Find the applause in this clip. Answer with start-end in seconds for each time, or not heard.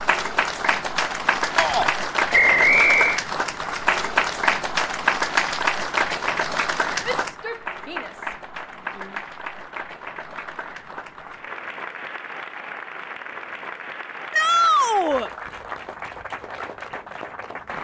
0.0-17.7.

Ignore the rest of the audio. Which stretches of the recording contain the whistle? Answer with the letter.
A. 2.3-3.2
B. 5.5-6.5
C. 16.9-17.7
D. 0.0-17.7
A.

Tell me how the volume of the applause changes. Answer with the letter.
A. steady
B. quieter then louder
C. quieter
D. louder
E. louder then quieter
C.